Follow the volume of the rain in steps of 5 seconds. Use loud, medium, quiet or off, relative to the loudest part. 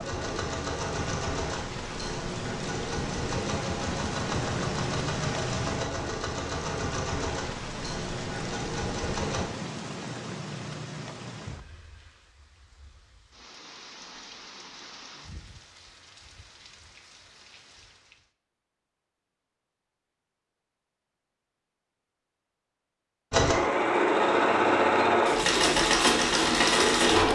loud, loud, medium, quiet, off, off.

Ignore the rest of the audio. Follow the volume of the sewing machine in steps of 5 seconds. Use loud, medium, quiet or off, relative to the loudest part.
quiet, quiet, off, off, loud, loud.